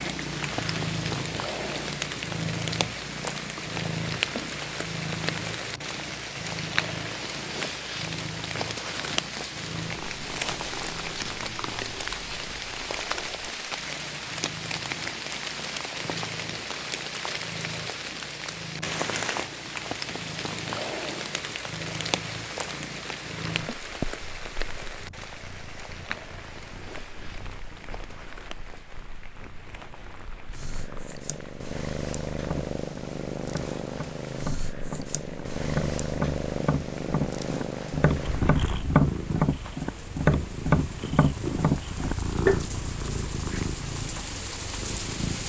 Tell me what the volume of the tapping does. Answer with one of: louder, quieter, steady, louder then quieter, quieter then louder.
louder.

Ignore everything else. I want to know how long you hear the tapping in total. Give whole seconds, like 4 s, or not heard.
10 s.